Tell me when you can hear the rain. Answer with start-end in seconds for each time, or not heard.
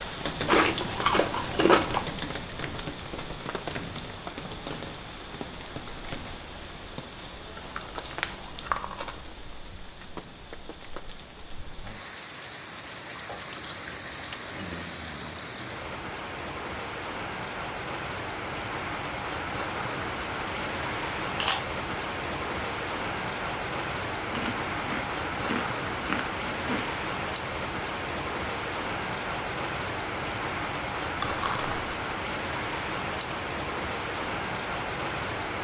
0.0-35.5.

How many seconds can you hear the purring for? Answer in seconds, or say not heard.
not heard.